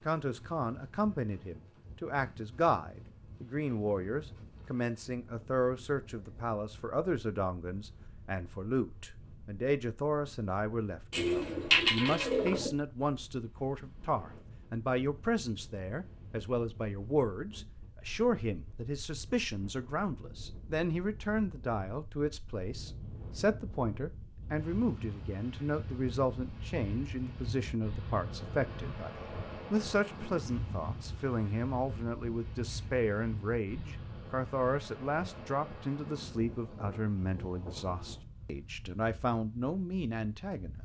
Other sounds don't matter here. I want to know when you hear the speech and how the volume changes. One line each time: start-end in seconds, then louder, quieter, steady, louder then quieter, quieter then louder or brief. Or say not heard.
0.1-40.8 steady.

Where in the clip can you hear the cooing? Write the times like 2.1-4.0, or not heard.
11.1-12.7.